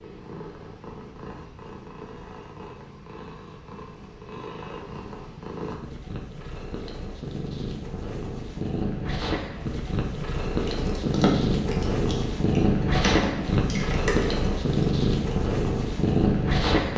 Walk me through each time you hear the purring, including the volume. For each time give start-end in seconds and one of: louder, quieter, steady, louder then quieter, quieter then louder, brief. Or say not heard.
0.0-16.9 louder.